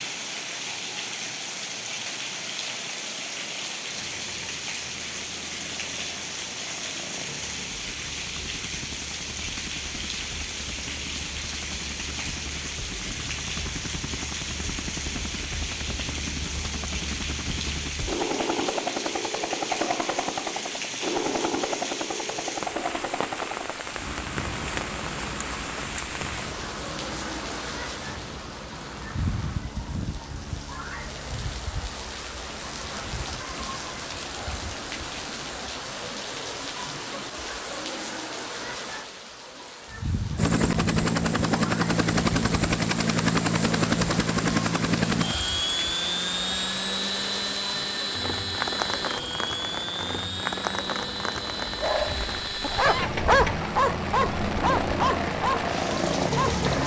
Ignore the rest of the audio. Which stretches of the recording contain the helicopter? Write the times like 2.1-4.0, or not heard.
0.0-36.2, 40.4-56.8.